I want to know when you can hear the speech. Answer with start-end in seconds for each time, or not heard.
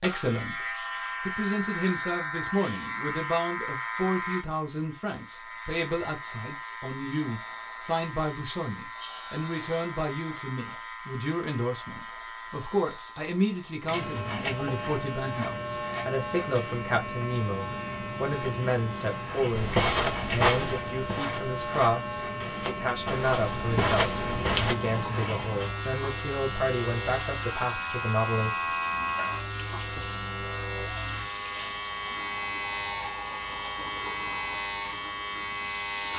0.0-28.8.